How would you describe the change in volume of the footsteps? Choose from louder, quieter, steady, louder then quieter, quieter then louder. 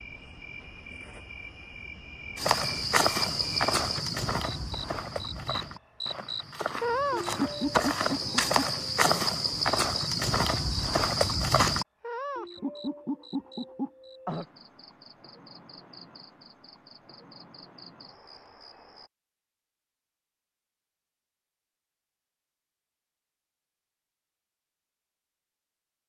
quieter then louder.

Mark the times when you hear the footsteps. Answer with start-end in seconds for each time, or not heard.
2.4-11.8.